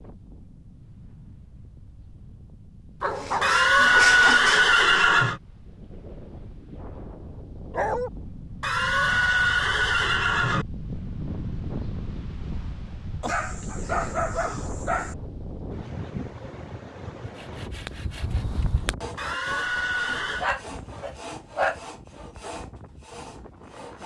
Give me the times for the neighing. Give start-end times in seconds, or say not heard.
3.4-5.4, 8.6-10.7, 19.1-20.5.